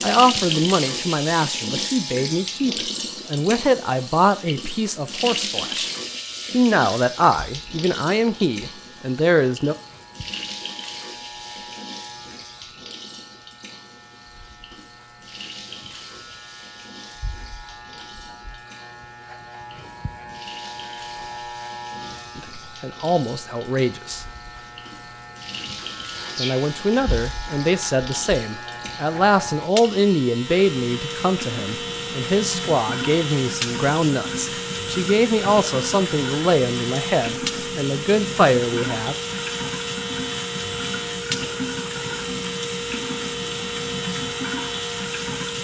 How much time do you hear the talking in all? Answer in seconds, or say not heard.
24 s.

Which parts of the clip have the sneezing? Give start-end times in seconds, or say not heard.
26.1-26.8.